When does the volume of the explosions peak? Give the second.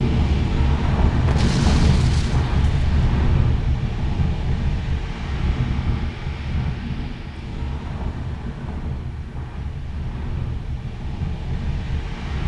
2 s.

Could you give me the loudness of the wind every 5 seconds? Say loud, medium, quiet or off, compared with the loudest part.
loud, medium, medium.